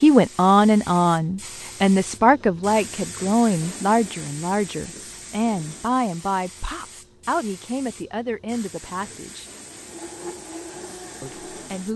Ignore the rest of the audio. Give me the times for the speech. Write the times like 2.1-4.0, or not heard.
0.0-9.4, 11.2-11.9.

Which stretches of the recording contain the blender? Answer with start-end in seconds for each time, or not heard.
8.9-11.9.